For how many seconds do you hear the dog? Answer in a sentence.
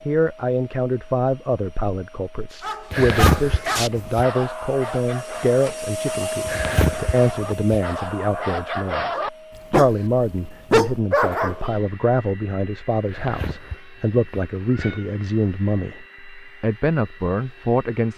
The dog can be heard for 9 seconds in total.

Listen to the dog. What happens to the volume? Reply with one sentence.
The volume of the dog goes down, then up.